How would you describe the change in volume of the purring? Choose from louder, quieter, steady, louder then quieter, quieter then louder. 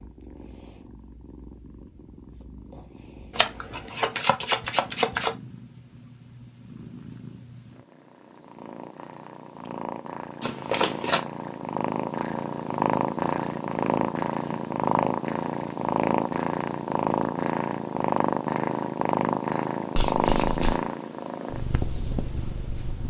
louder.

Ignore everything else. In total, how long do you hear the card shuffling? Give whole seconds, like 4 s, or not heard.
4 s.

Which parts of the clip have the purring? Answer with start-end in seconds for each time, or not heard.
0.0-23.0.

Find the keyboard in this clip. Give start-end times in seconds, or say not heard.
not heard.